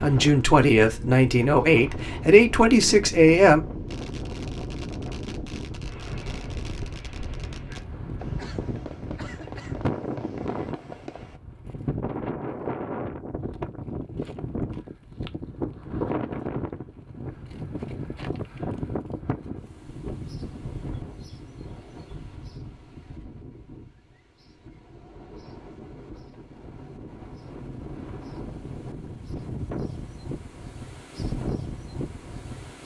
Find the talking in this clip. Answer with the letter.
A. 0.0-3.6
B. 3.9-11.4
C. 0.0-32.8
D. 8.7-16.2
A.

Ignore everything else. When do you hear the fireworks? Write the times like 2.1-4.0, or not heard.
3.9-11.4.